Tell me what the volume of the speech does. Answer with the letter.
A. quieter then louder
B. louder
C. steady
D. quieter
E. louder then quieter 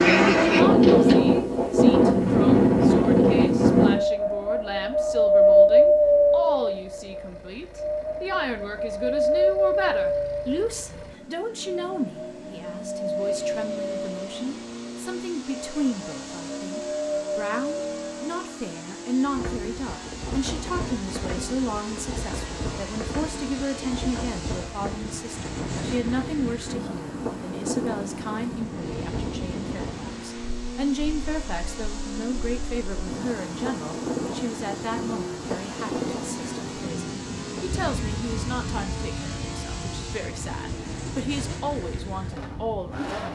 C.